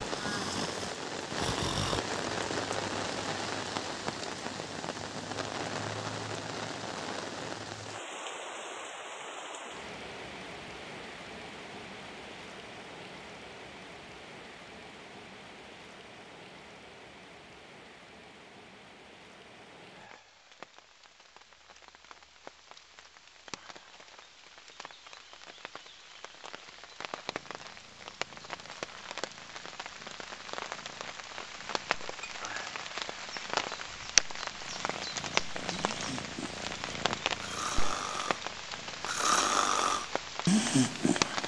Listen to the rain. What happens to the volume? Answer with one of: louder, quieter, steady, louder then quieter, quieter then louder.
quieter then louder.